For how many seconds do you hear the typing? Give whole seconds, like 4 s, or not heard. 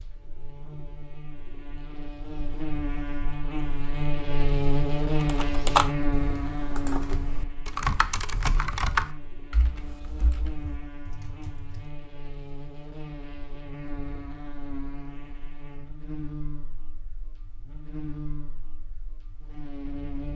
7 s.